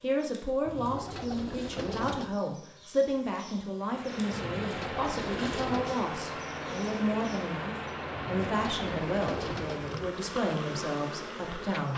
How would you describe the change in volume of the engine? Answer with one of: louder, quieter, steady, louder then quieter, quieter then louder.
quieter.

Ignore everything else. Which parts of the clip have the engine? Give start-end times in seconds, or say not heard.
3.8-11.9.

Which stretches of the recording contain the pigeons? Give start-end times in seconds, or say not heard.
0.7-2.4, 4.3-6.0, 8.1-10.1.